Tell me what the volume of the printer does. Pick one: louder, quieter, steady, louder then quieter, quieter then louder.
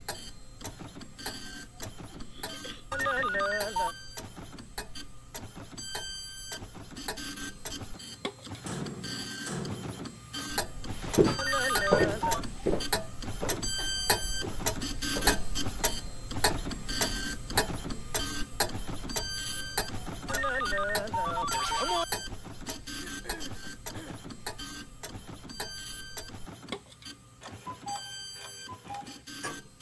louder then quieter.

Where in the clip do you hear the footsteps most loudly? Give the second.
12 s.